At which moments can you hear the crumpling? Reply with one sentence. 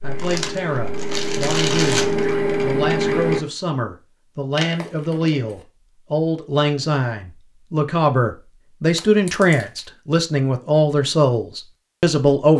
The crumpling can be heard from 0.1 to 2.4 s, from 4.5 to 5.7 s and from 8.8 to 9.8 s.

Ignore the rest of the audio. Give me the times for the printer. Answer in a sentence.
You can hear the printer from 0.0 to 3.4 s.